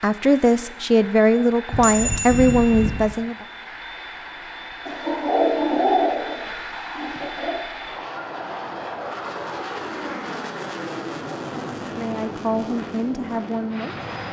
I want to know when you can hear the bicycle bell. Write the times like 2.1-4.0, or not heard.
1.7-3.1.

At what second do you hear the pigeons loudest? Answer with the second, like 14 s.
6 s.